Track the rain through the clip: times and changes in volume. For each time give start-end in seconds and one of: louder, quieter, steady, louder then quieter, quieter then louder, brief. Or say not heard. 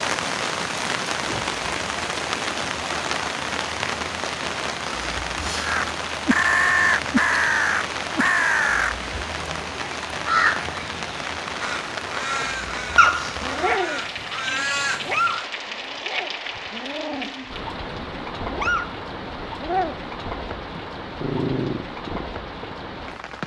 0.0-23.4 quieter.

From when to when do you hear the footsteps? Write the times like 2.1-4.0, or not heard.
not heard.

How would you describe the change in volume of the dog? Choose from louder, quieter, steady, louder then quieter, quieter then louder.
quieter then louder.